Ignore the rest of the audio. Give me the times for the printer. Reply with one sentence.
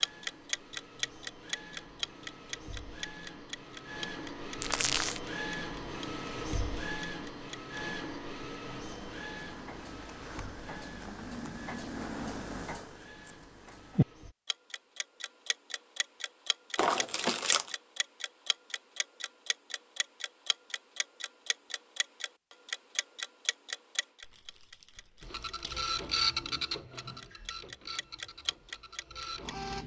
The printer can be heard from 0.0 to 14.3 s and from 25.2 to 29.8 s.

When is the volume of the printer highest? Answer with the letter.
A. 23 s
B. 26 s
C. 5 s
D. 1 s
B.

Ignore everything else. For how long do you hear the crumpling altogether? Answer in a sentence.
You can hear the crumpling for 3 seconds altogether.